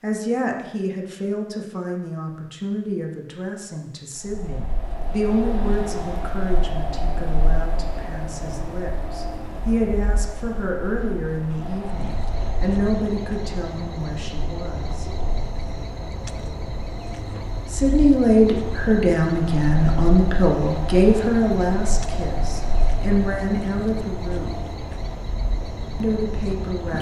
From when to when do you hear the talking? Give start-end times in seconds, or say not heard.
0.0-15.1, 17.7-24.6, 26.0-26.9.